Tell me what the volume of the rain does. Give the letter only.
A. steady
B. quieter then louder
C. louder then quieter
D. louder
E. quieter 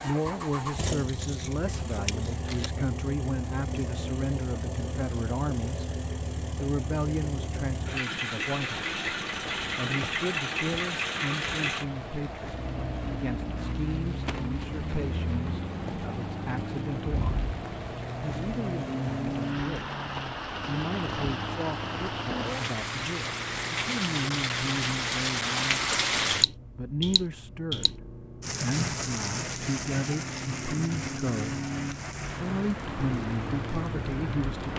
C.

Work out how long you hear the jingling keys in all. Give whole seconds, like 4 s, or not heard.
2 s.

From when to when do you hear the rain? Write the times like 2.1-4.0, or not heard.
8.6-34.7.